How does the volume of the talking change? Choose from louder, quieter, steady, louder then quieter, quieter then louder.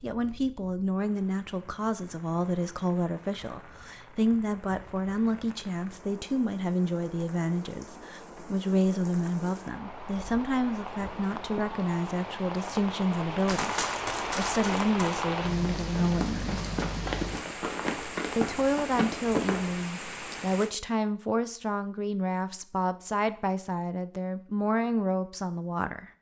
steady.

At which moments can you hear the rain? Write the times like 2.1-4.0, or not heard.
0.0-20.8.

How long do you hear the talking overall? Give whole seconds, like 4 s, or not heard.
24 s.